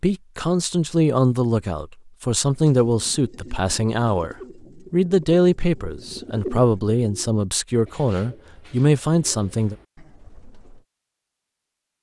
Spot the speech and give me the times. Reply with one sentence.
The speech can be heard from 0.0 to 9.8 s.